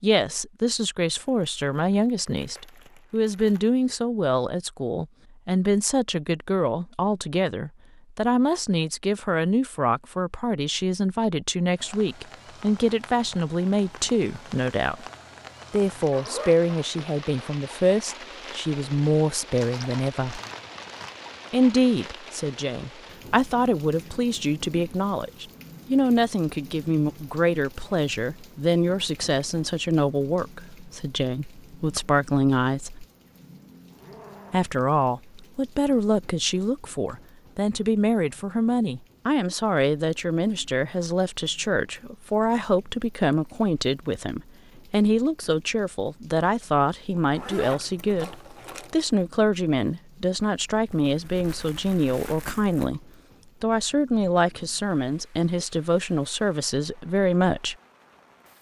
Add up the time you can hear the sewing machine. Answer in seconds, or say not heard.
not heard.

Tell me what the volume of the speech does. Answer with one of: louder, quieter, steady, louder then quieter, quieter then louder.
steady.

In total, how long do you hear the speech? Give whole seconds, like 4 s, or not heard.
54 s.